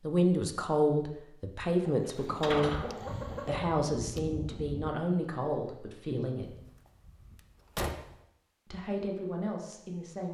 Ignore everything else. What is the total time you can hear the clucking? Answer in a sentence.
You can hear the clucking for 2 seconds altogether.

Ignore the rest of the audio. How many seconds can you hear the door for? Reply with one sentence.
You can hear the door for 3 seconds altogether.